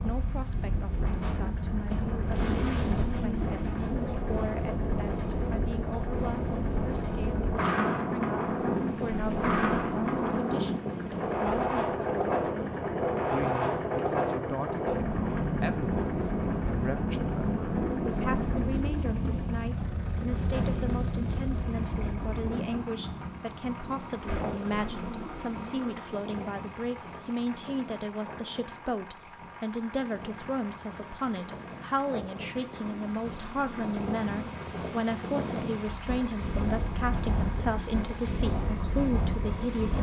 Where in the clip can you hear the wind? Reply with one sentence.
You can hear the wind from 0.0 to 39.9 s.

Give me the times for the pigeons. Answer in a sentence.
The pigeons can be heard from 2.4 to 4.4 s, from 8.6 to 10.4 s, from 17.9 to 19.4 s, from 24.2 to 26.2 s and from 32.8 to 34.7 s.